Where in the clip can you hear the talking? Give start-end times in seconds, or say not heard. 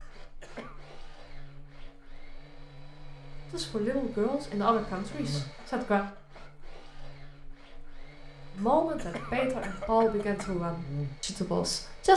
3.5-6.0, 8.6-12.1.